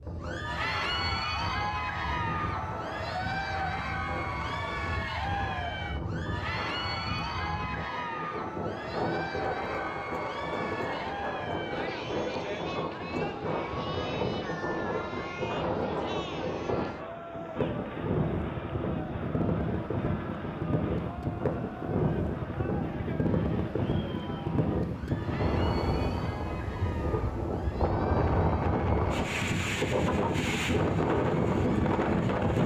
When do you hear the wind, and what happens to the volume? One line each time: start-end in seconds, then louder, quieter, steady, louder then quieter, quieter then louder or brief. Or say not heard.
0.0-32.6 louder.